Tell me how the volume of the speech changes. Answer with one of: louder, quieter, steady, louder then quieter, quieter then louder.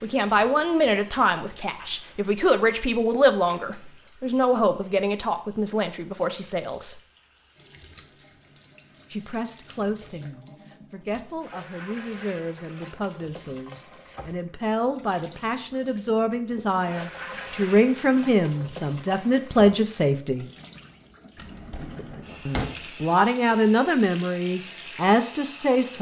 quieter then louder.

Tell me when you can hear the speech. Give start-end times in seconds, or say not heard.
0.0-7.0, 9.1-20.4, 22.4-25.9.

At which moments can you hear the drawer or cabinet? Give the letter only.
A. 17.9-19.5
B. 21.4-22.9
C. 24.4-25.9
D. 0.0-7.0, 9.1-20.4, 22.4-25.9
B.